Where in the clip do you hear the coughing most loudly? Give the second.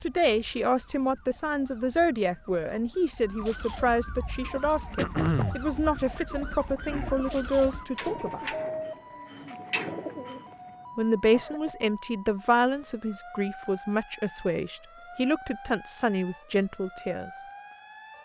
5 s.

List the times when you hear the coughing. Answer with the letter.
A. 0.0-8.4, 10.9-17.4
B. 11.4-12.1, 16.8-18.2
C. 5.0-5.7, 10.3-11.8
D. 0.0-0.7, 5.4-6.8
C.